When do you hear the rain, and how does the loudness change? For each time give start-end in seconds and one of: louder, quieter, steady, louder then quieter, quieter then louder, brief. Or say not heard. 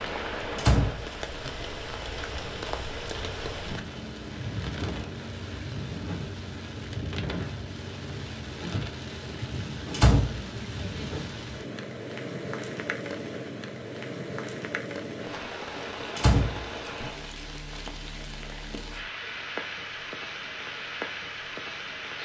0.0-22.2 steady.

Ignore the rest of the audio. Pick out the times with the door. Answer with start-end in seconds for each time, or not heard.
0.6-1.5, 9.9-10.4, 16.1-17.1.